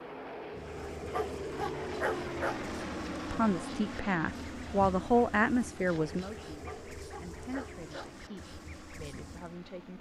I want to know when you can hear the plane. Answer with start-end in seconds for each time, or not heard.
0.0-9.9.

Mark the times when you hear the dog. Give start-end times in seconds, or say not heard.
1.0-2.6, 6.5-8.2.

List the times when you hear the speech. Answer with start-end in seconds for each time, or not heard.
3.3-9.9.